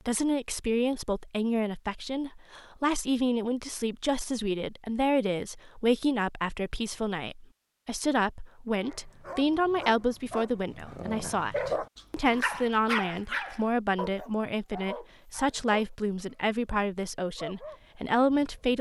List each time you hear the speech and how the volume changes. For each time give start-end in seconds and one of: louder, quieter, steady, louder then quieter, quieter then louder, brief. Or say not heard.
0.1-18.7 steady.